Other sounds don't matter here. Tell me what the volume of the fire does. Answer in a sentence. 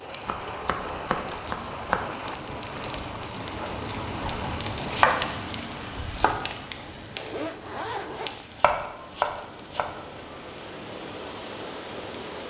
The volume of the fire goes up, then down.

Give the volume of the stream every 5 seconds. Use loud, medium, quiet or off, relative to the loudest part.
loud, medium, loud.